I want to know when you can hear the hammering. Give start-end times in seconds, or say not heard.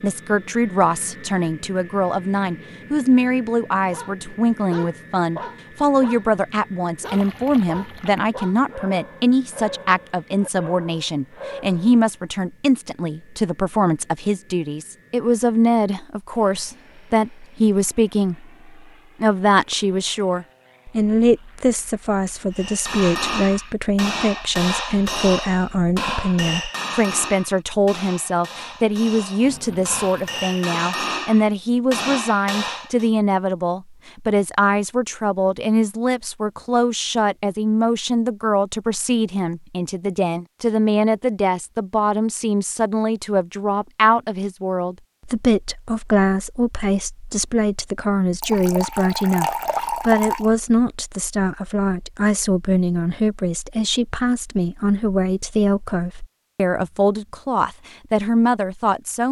22.5-33.1.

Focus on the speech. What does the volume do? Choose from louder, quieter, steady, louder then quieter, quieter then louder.
steady.